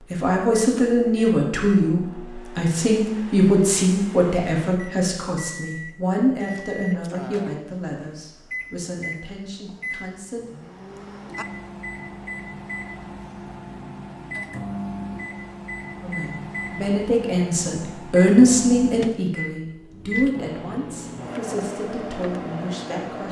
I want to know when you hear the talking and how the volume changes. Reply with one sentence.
The talking can be heard from 0.1 to 10.5 s, getting quieter; and from 16.0 to 23.2 s, getting louder then quieter.